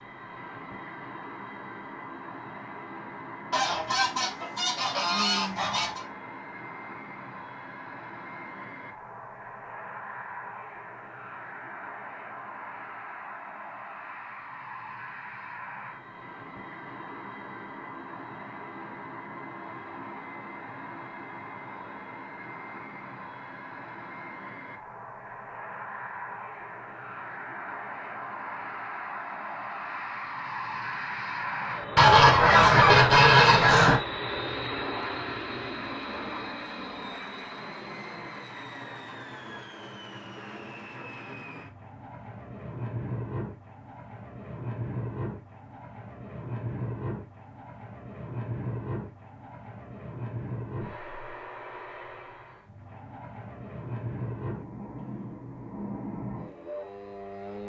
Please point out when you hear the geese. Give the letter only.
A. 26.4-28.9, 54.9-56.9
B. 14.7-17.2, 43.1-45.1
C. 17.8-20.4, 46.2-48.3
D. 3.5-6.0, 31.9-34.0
D.